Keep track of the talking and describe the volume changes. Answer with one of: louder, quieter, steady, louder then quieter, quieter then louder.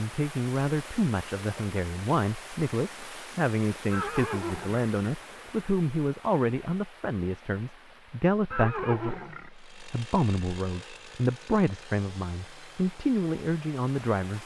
steady.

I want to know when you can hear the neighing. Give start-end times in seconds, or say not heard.
3.9-4.8, 8.5-9.5.